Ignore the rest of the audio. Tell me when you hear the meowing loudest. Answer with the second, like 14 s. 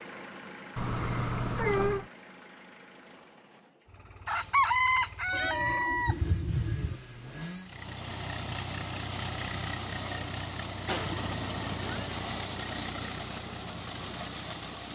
2 s.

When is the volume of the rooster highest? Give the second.
5 s.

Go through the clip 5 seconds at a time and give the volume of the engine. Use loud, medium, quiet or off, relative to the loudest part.
quiet, loud, loud.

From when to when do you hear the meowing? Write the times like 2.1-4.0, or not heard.
0.8-2.0, 5.3-7.0, 10.8-12.1.